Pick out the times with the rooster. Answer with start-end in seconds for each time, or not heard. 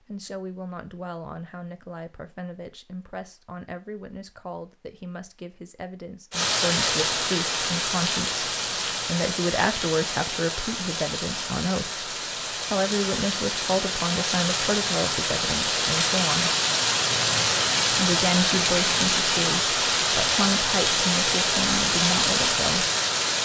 not heard.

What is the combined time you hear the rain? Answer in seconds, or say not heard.
17 s.